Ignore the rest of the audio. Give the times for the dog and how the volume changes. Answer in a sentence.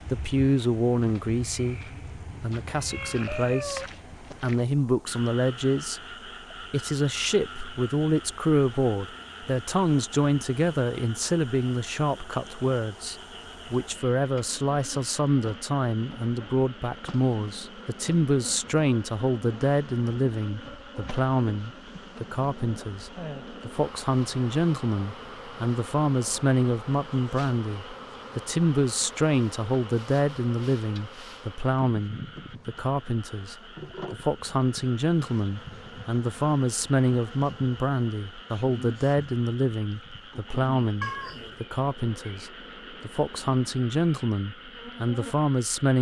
The dog can't be heard in this clip.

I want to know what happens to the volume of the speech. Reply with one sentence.
The loudness of the speech stays about the same.